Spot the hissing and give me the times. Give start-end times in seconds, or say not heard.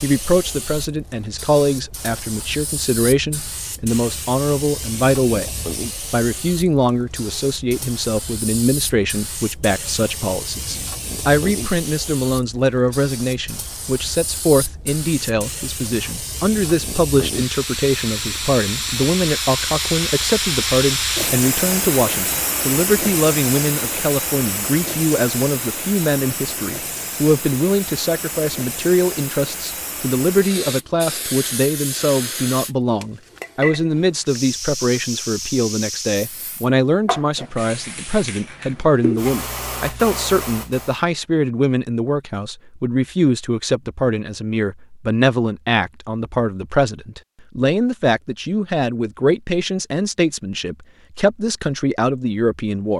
0.0-41.0.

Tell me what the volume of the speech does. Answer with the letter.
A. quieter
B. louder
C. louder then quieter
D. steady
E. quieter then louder
D.